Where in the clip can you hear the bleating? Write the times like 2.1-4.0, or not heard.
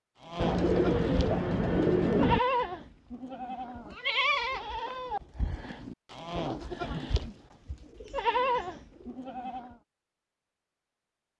0.2-9.8.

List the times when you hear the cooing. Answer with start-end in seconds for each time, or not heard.
0.3-2.4, 7.8-9.2.